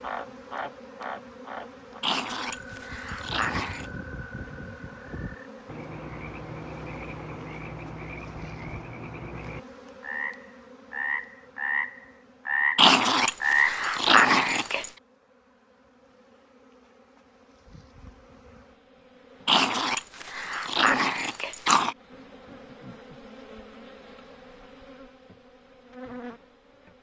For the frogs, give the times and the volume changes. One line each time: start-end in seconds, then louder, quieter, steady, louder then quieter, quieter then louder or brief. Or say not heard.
0.0-13.8 louder.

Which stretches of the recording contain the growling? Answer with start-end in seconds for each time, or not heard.
2.0-3.9, 12.8-14.9, 19.4-21.9.